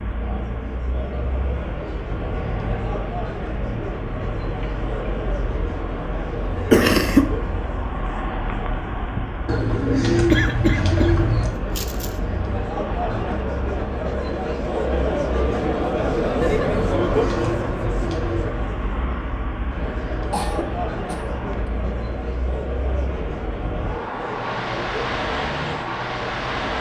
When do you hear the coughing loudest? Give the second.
7 s.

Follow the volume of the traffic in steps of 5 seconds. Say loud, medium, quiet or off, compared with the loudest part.
medium, medium, medium, medium, medium, loud.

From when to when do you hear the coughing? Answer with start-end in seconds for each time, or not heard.
6.7-7.3, 10.3-12.1, 20.3-21.2.